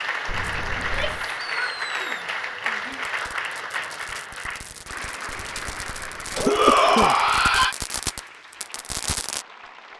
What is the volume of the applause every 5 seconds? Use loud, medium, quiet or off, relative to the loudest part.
loud, medium.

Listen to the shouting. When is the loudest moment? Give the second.
7 s.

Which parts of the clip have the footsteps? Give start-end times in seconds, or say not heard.
not heard.